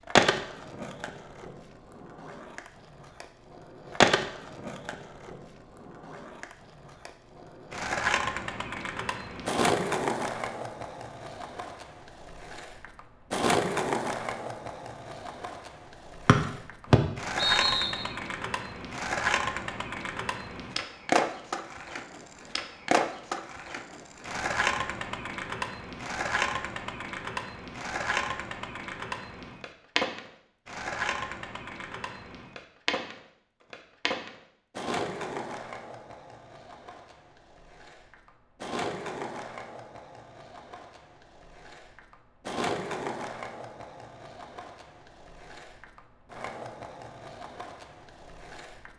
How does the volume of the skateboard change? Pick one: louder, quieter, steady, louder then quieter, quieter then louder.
quieter.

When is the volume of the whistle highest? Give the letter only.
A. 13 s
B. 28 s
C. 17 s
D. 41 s
C.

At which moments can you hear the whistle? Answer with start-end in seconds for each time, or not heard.
16.2-18.1.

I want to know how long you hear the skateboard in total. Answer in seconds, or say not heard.
49 s.